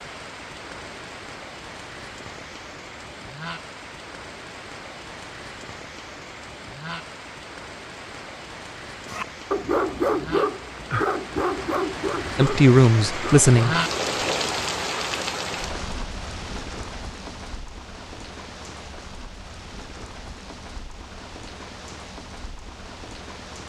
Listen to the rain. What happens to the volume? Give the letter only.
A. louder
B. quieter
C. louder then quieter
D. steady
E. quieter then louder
C.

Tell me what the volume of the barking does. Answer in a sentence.
The volume of the barking goes down.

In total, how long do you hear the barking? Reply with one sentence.
You can hear the barking for 5 seconds altogether.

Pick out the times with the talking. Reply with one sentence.
You can hear the talking from 12.3 to 13.8 s.